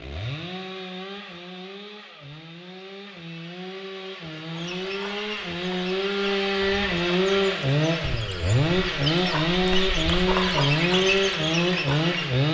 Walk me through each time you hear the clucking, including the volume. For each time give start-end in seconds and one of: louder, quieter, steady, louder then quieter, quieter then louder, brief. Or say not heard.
4.5-12.2 louder.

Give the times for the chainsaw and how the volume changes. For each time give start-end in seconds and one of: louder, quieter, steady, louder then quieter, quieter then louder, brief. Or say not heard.
0.0-12.4 louder.